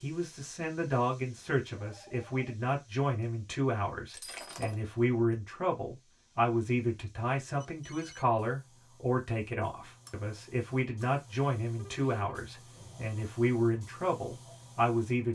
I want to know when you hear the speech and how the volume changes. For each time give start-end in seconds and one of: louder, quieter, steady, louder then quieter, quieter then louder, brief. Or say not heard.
0.0-15.3 steady.